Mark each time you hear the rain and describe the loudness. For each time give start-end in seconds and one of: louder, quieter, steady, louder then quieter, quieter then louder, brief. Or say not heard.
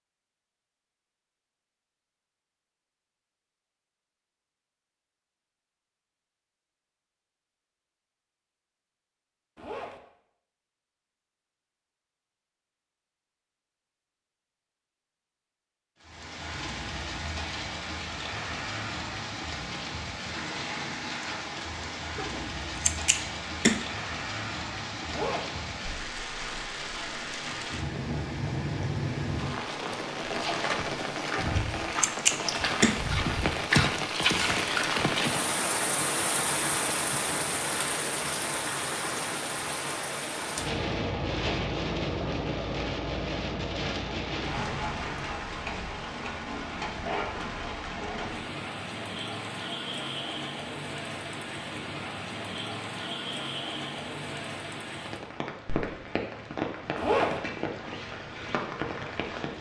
16.0-59.5 louder then quieter.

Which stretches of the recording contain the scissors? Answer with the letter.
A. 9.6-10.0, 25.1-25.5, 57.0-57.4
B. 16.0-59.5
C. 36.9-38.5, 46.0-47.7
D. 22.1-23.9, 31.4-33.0
D.